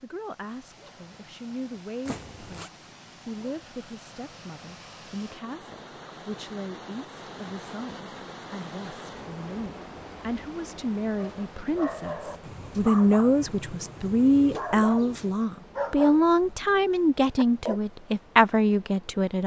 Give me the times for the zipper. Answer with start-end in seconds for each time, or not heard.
2.0-2.7.